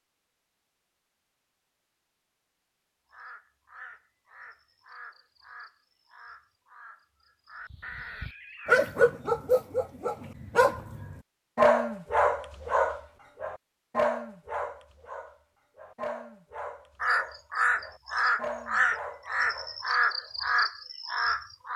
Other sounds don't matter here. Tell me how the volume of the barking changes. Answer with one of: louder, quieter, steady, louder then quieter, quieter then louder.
quieter.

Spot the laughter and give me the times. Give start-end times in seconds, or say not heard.
not heard.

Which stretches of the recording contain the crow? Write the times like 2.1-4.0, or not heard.
3.0-8.9, 17.0-21.7.